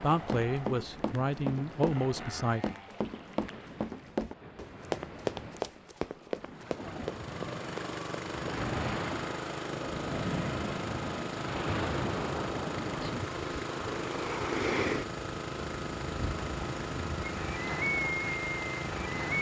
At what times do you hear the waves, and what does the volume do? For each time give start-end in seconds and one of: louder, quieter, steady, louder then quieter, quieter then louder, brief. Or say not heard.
0.0-19.3 louder.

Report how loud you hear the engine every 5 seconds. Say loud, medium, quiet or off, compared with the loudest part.
medium, loud, loud, loud.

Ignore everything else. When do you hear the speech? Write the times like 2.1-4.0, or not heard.
0.0-2.6.